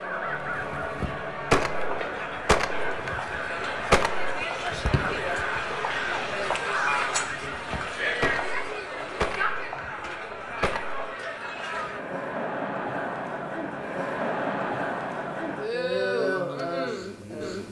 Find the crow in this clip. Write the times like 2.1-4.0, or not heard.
0.0-11.2.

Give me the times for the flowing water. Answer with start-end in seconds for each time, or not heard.
not heard.